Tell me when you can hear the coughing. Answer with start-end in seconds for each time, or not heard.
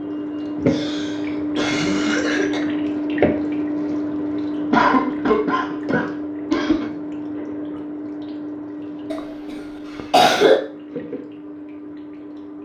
0.7-2.6, 4.7-6.9, 9.1-10.6.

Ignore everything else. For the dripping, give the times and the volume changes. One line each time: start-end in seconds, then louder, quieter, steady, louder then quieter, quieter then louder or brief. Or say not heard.
0.0-12.5 quieter.